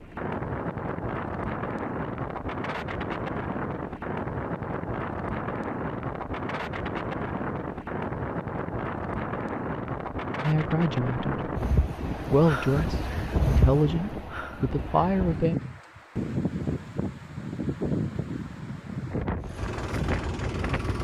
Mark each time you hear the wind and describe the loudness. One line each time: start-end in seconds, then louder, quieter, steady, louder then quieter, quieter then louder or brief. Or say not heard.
0.0-20.9 steady.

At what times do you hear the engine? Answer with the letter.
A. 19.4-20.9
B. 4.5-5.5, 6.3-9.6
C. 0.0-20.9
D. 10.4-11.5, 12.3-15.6
A.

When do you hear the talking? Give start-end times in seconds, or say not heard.
10.4-11.5, 12.3-15.6.